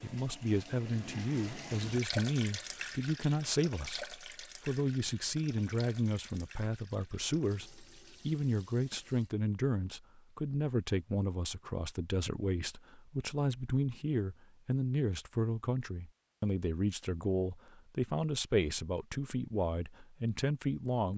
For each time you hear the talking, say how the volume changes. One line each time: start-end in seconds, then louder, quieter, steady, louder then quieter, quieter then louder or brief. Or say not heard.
0.0-21.1 steady.